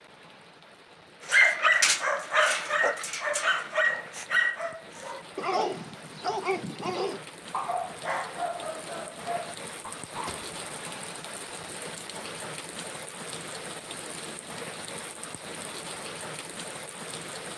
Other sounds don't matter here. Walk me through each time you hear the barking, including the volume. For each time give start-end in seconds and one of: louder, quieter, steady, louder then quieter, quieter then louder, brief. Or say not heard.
1.2-10.6 quieter.